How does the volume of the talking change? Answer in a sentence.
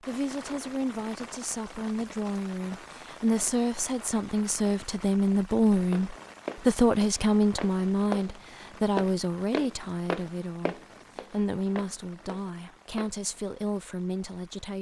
The loudness of the talking goes up, then down.